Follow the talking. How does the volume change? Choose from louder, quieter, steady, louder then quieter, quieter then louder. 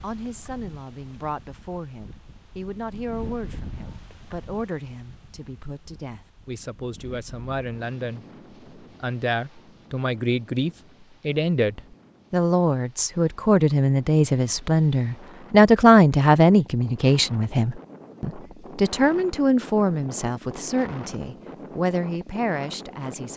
louder then quieter.